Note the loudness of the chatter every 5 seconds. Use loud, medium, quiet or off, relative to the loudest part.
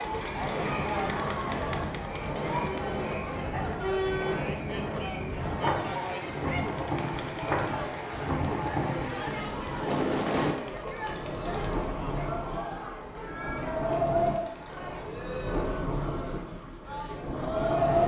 loud, loud, medium, medium.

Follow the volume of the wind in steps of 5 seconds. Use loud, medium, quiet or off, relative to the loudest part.
medium, loud, loud, loud.